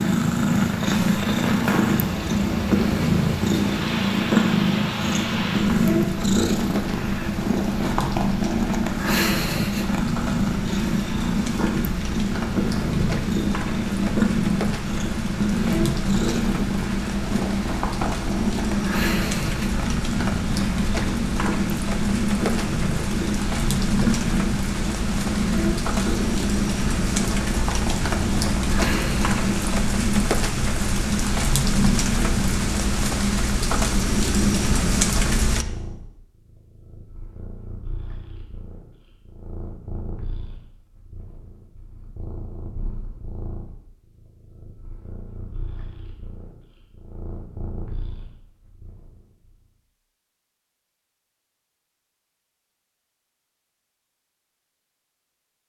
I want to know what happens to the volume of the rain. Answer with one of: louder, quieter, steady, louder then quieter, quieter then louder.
louder.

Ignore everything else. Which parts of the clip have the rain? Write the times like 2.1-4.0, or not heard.
0.0-35.6.